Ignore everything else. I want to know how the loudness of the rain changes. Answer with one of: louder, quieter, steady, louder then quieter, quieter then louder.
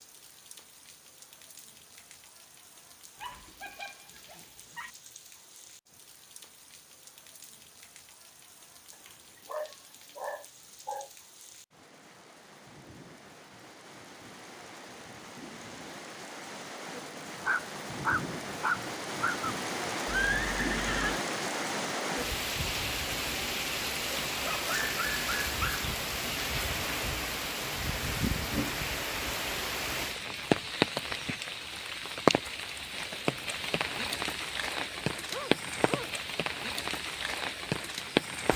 louder.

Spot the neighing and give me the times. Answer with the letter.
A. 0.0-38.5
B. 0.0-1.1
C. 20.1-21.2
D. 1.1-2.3
C.